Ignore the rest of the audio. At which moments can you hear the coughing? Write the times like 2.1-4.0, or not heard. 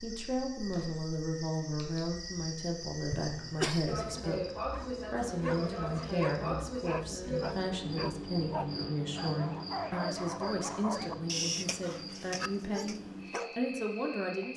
3.1-3.9.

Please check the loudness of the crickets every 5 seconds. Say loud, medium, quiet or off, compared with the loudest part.
loud, loud, medium.